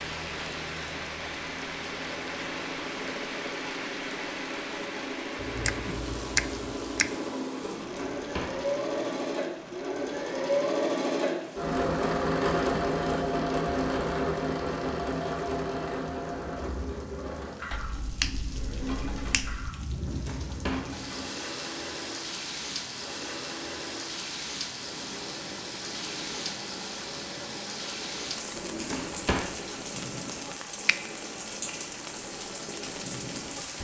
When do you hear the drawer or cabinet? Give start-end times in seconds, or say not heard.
7.8-8.6, 19.9-20.9, 28.6-29.5.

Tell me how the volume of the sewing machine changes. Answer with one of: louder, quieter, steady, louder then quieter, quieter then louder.
louder then quieter.